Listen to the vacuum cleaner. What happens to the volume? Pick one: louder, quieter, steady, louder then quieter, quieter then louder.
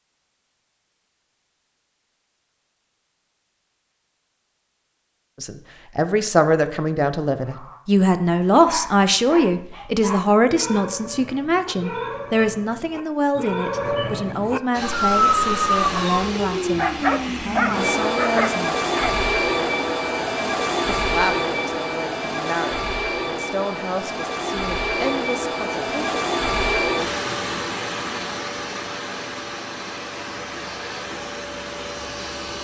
quieter.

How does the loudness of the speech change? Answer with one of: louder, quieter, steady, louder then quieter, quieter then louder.
quieter.